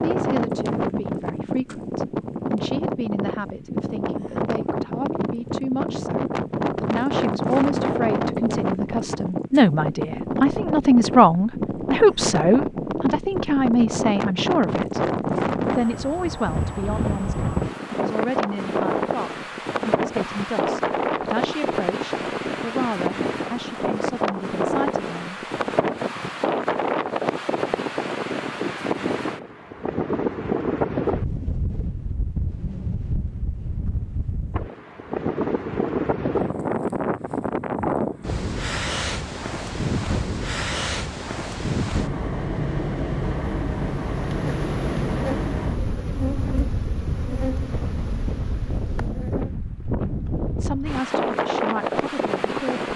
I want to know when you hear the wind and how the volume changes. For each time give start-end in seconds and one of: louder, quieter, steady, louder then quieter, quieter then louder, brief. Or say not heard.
0.0-52.9 steady.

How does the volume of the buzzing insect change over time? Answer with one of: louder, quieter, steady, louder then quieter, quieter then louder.
quieter.